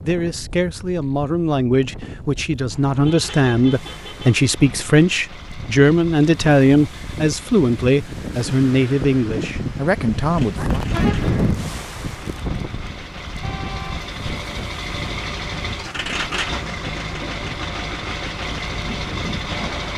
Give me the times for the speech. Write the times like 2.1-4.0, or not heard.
0.0-10.7.